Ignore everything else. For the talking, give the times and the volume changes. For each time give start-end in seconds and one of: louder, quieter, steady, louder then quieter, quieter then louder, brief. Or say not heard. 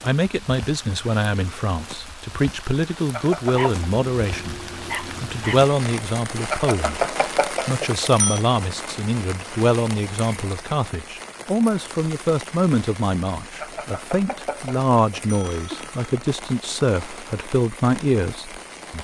0.0-19.0 steady.